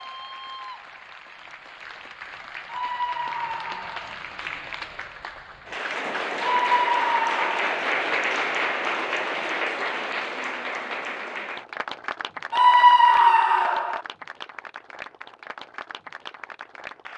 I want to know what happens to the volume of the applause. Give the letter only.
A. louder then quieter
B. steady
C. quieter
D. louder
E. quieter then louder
A.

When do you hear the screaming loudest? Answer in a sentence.
The loudest moment of the screaming is at 13 seconds.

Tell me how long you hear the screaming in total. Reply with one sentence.
The screaming can be heard for 4 seconds in total.